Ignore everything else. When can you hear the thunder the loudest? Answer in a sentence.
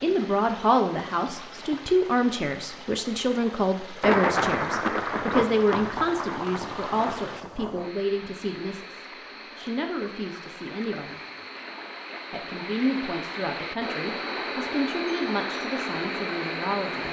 The volume of the thunder peaks at 4 seconds.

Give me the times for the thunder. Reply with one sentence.
The thunder can be heard from 4.0 to 7.9 s.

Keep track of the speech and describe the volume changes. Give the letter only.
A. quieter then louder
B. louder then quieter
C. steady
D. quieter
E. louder
D.